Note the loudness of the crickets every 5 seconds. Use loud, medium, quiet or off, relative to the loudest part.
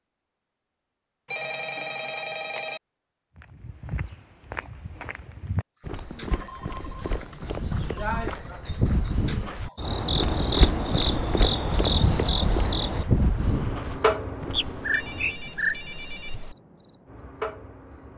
off, loud, loud, quiet.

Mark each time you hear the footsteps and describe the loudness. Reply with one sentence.
You can hear the footsteps from 3.4 to 14.7 s, getting louder.